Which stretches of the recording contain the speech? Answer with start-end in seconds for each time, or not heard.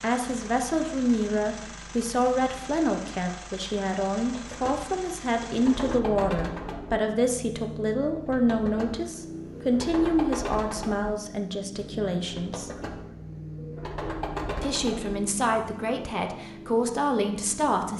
0.0-12.7, 14.6-17.9.